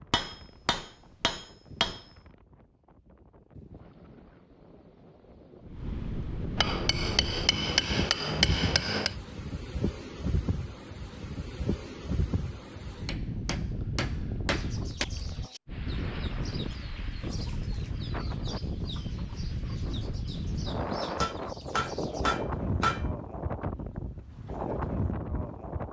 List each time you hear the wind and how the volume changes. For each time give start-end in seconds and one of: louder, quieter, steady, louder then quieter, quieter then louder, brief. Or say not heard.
0.0-25.8 louder.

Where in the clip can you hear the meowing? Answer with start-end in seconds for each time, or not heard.
not heard.